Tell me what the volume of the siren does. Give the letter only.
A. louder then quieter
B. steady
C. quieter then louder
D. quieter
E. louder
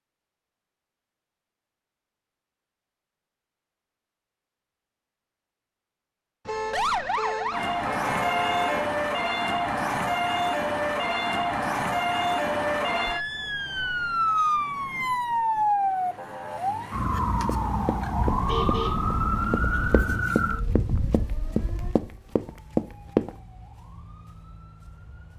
D.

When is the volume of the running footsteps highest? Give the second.
23 s.